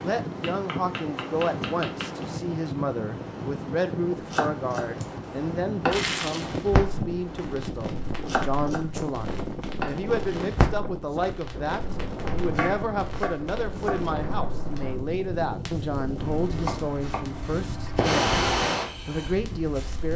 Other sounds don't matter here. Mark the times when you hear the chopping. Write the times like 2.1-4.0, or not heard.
0.4-2.2, 4.3-6.2, 8.2-9.9, 12.3-14.1, 16.1-18.1.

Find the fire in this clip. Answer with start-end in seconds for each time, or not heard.
5.9-20.1.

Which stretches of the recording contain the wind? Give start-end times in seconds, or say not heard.
0.0-20.1.